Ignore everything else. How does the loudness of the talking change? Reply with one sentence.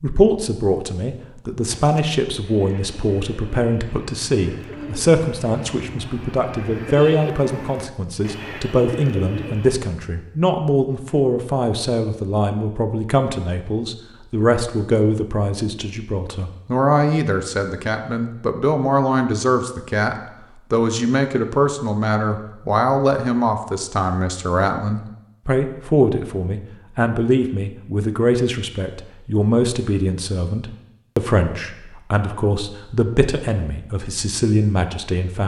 The loudness of the talking stays about the same.